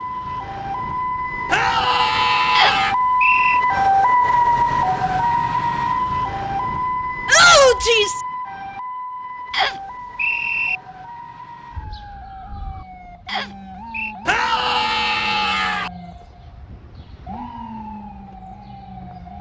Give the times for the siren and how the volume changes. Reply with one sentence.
You can hear the siren from 0.0 to 19.3 s, getting quieter.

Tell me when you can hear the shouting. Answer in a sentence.
You can hear the shouting from 1.5 to 3.0 s, from 7.2 to 8.2 s and from 14.2 to 15.9 s.